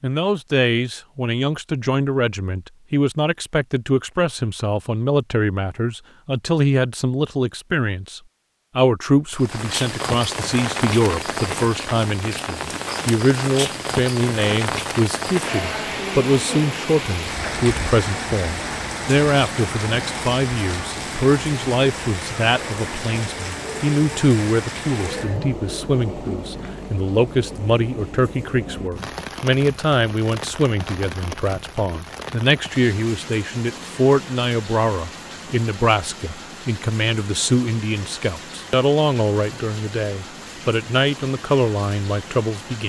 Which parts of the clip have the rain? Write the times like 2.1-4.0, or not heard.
9.3-42.8.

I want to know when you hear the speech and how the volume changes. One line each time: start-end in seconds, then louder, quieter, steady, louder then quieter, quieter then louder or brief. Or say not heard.
0.0-42.8 steady.